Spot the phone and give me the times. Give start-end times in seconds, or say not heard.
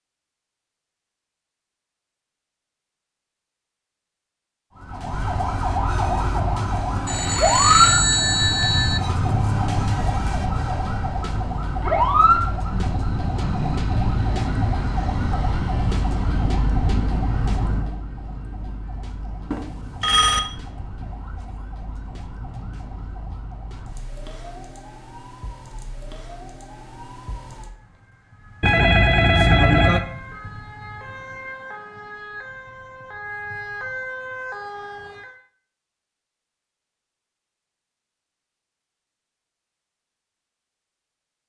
7.0-9.0, 19.5-20.4, 28.6-30.1.